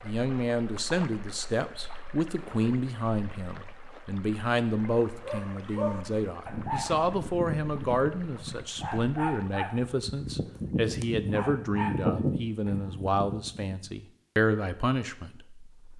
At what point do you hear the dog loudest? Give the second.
12 s.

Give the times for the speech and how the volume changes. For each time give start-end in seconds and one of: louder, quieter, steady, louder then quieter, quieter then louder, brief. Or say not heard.
0.0-15.9 steady.